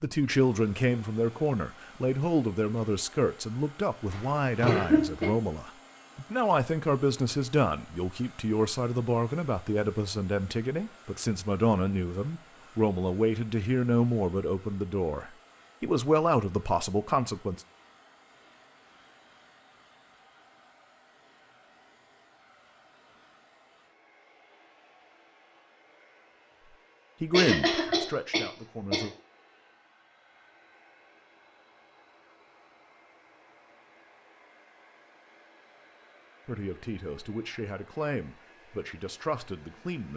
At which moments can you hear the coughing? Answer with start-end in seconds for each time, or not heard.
4.1-5.3, 27.3-29.1.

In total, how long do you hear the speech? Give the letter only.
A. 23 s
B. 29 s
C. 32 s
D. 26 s
A.